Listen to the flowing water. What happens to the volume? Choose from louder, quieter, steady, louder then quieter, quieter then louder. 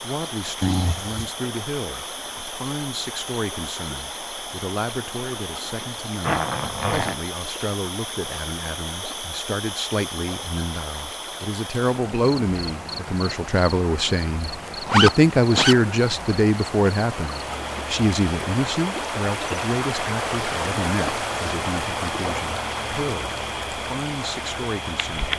louder.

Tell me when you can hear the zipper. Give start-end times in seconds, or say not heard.
6.2-7.2, 14.8-15.8.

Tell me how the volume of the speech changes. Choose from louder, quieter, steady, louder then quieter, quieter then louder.
louder then quieter.